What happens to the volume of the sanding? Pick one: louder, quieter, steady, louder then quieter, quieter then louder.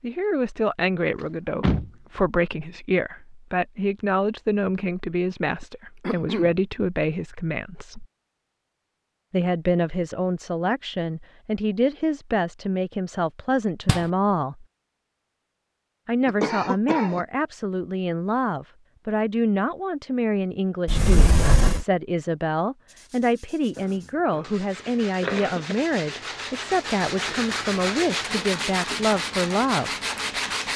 louder.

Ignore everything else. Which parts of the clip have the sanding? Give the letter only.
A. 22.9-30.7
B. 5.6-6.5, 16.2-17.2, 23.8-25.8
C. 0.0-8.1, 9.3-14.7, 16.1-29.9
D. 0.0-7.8
A.